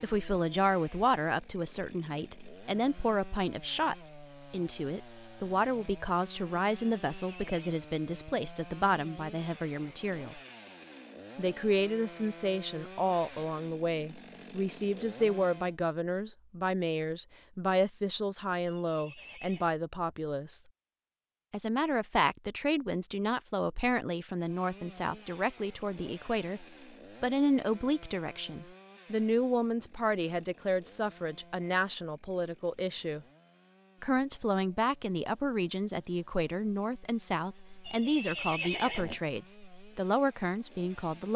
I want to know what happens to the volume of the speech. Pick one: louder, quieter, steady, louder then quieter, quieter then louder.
steady.